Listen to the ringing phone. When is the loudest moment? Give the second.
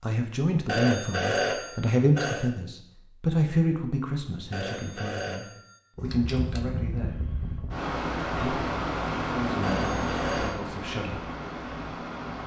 1 s.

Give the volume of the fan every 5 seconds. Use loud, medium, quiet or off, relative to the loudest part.
off, loud, loud.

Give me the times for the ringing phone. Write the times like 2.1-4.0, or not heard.
0.7-2.5, 4.5-5.7, 9.6-10.6.